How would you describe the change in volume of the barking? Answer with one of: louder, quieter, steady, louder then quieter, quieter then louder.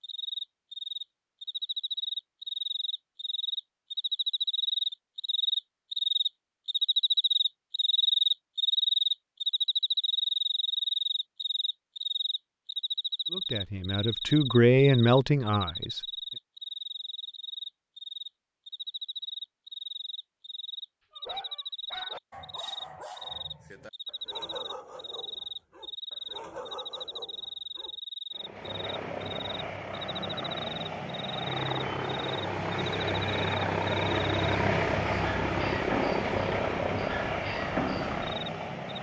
quieter then louder.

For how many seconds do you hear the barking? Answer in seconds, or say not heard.
7 s.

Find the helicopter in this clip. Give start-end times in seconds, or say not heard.
28.3-38.9.